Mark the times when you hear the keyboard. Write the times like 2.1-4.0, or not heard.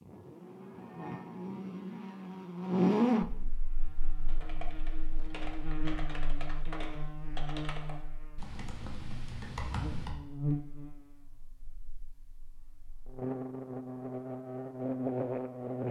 4.0-10.2.